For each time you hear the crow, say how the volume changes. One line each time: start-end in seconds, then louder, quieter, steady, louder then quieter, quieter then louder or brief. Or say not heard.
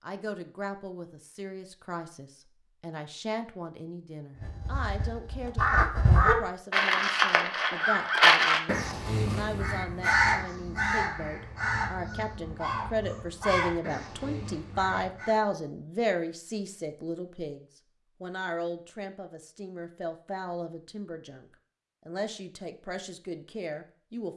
4.4-15.3 quieter.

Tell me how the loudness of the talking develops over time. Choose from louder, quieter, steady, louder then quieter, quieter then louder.
louder then quieter.